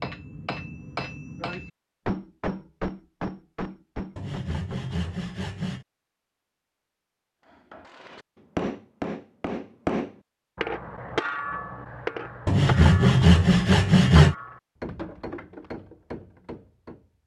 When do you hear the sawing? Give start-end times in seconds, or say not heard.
4.2-5.8, 12.4-14.3.